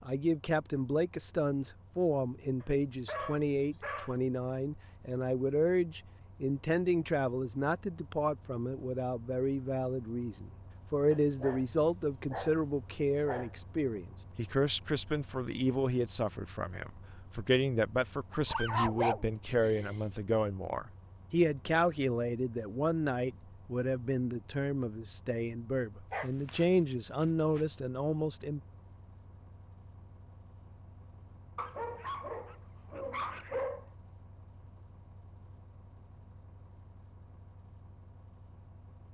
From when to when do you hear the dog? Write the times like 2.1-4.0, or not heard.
2.6-4.1, 11.1-14.0, 18.3-20.2, 26.1-26.6, 31.6-33.9.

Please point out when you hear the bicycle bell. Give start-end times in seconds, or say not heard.
not heard.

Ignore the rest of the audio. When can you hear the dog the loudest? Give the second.
19 s.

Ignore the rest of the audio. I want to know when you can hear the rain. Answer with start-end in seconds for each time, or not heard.
not heard.